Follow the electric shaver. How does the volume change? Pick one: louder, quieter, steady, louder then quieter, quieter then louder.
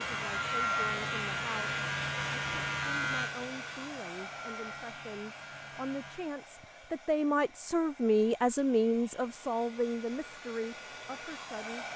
quieter.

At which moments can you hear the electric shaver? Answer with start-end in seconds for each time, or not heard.
0.0-6.3.